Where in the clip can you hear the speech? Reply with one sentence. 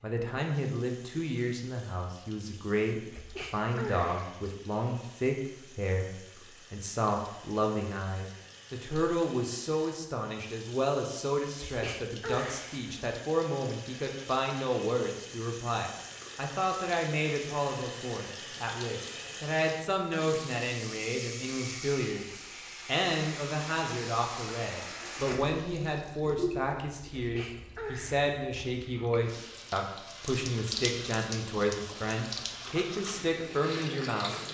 You can hear the speech from 0.0 to 34.4 s.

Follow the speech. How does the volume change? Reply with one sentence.
The loudness of the speech stays about the same.